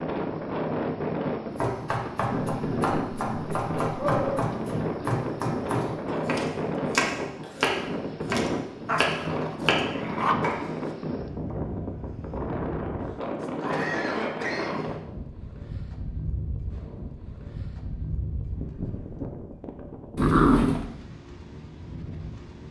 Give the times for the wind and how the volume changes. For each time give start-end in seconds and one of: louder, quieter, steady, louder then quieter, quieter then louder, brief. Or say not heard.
0.0-22.6 quieter.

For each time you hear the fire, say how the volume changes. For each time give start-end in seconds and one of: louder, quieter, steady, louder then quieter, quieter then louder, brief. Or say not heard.
not heard.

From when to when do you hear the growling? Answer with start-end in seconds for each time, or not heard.
2.3-4.4, 8.8-10.3, 20.1-20.9.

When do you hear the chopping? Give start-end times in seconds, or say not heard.
1.6-10.9.